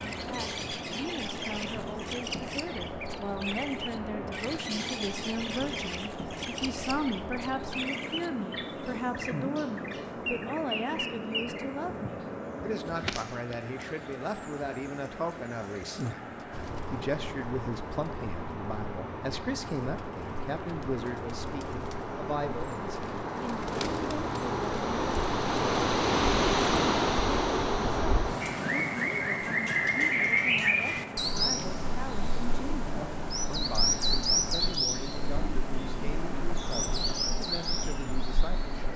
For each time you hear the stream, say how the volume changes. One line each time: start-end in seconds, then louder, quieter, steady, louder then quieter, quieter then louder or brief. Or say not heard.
0.0-38.9 louder then quieter.